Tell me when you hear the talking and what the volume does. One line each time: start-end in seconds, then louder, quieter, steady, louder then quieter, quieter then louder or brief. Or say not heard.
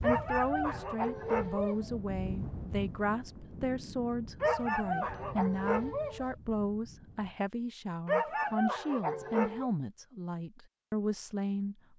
0.0-11.8 steady.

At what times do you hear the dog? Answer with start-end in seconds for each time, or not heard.
0.0-1.9, 4.4-6.3, 8.1-9.7.